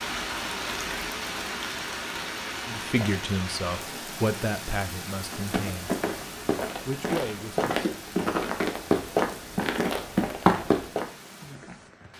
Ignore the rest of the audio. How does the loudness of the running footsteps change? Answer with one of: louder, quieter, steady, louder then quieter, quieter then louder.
louder.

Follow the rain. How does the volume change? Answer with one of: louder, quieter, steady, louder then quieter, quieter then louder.
quieter.